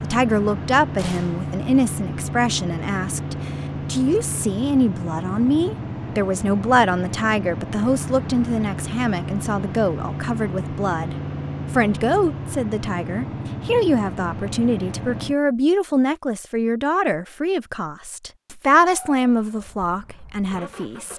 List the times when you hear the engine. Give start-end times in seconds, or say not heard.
0.0-15.3, 18.8-21.1.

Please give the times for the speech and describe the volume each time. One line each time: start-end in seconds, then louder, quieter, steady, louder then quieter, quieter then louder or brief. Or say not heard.
0.0-21.1 steady.